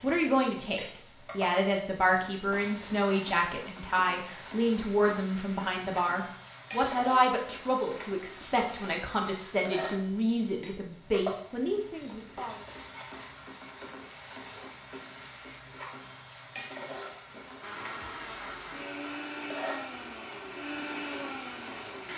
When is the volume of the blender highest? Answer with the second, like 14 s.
21 s.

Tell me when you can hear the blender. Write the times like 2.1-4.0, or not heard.
17.6-22.1.